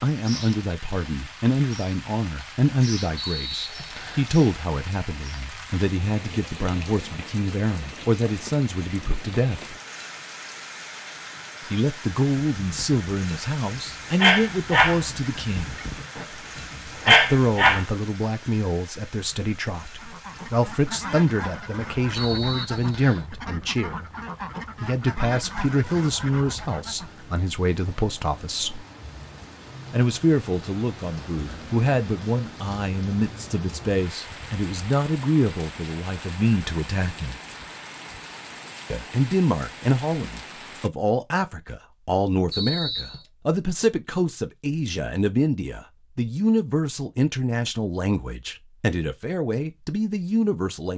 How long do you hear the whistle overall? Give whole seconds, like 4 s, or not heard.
3 s.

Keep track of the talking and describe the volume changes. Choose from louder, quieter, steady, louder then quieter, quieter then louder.
steady.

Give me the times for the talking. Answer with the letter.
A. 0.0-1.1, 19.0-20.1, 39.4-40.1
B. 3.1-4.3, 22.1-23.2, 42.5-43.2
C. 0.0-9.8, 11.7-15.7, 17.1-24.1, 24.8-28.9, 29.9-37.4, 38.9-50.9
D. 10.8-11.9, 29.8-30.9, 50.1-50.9
C.